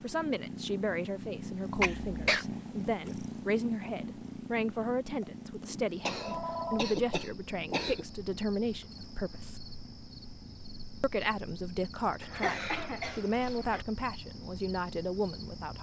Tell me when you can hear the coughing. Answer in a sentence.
You can hear the coughing from 1.8 to 2.5 s, from 6.0 to 8.1 s and from 12.2 to 13.8 s.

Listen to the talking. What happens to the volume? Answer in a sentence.
The volume of the talking stays about the same.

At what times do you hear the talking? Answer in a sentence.
The talking can be heard from 0.0 to 9.6 s and from 11.0 to 15.7 s.